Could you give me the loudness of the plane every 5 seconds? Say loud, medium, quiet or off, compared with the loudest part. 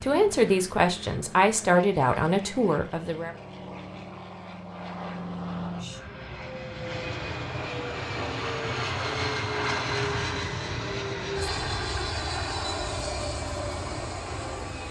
medium, loud, loud.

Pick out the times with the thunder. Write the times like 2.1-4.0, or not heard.
not heard.